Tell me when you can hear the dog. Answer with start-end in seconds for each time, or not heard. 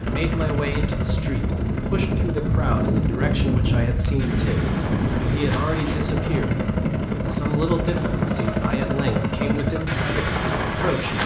not heard.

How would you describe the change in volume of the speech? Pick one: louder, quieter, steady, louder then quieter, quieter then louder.
steady.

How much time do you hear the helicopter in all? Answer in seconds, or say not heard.
11 s.